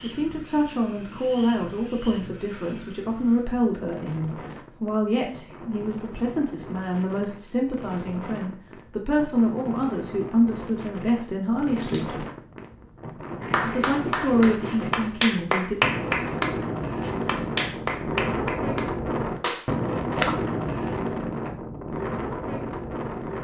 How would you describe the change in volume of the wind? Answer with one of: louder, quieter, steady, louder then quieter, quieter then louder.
louder.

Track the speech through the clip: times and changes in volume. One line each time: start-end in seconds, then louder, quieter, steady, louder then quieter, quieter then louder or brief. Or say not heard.
0.0-12.2 steady
13.6-15.8 brief.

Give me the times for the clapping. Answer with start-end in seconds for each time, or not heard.
13.4-20.4.